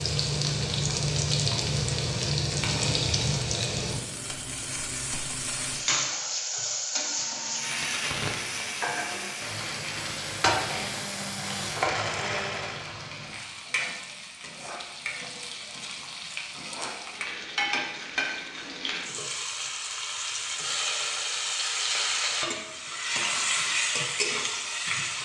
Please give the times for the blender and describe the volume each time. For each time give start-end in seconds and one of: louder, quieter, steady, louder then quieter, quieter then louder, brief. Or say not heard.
6.9-12.9 louder.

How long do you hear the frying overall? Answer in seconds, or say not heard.
25 s.